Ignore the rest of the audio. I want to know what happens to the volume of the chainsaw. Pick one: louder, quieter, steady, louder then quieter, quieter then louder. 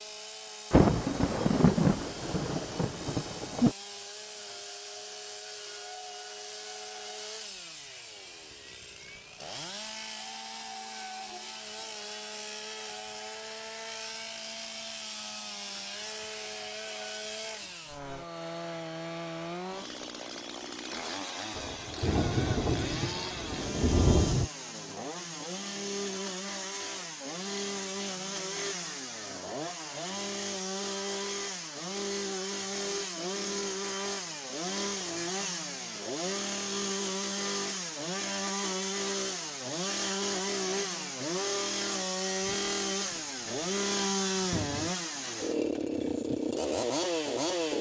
louder.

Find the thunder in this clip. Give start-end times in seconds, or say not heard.
0.7-3.8, 21.6-24.5, 42.4-45.0.